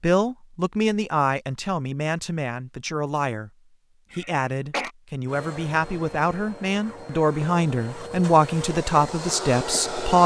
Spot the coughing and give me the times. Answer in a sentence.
You can hear the coughing from 4.1 to 4.9 s.